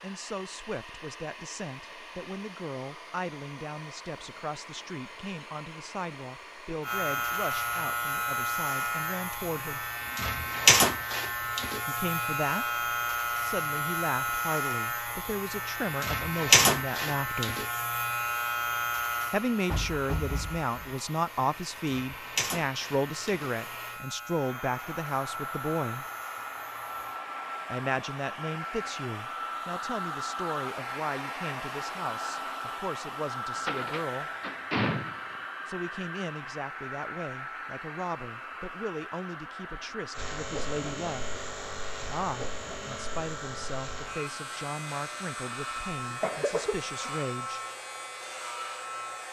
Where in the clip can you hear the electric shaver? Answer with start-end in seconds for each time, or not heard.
6.8-27.2, 40.1-49.2.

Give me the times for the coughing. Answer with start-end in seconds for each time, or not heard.
45.8-47.1.